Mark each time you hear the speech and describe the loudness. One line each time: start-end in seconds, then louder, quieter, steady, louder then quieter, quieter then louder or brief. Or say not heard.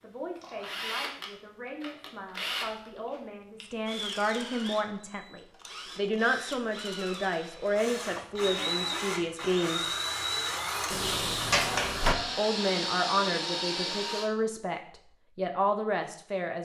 0.0-9.9 louder
12.3-16.5 quieter then louder.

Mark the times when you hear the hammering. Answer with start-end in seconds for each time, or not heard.
not heard.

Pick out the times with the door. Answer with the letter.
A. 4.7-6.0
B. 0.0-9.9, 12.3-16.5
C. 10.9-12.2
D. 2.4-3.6
C.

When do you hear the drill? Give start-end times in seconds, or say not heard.
0.3-14.3.